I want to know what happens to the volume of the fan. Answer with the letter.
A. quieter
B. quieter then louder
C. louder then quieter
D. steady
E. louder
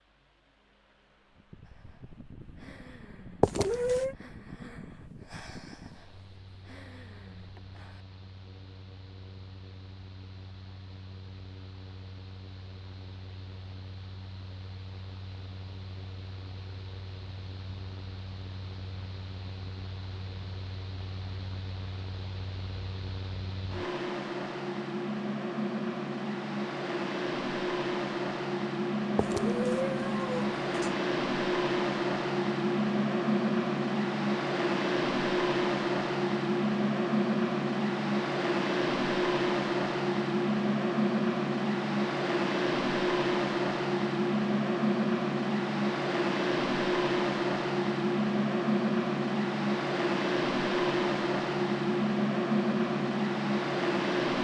E.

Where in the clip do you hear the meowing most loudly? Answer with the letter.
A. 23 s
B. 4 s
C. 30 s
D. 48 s
B.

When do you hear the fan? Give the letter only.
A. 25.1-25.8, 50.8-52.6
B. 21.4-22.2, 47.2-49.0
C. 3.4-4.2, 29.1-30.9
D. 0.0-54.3
D.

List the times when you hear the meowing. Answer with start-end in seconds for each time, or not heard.
3.4-4.2, 29.1-30.9.